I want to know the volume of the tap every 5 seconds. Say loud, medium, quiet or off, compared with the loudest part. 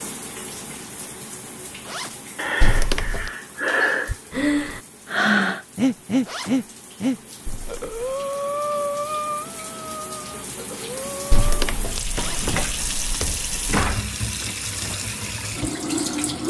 quiet, quiet, loud, loud.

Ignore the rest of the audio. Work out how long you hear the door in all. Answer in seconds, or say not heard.
4 s.